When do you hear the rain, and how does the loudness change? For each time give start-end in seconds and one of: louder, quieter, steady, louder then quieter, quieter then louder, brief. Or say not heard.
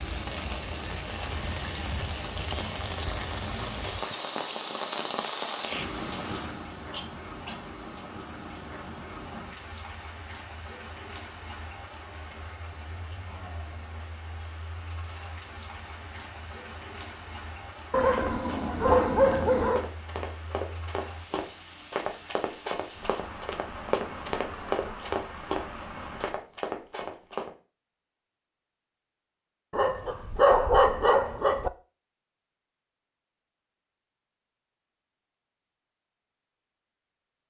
0.0-26.4 quieter.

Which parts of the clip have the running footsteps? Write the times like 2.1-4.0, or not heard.
18.1-27.5.